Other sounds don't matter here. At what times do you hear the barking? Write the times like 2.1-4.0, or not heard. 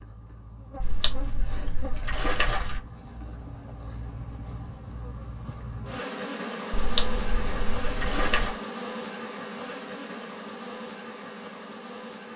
not heard.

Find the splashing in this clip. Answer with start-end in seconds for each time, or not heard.
0.8-2.8, 6.7-8.6.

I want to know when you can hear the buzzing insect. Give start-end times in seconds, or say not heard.
0.0-12.3.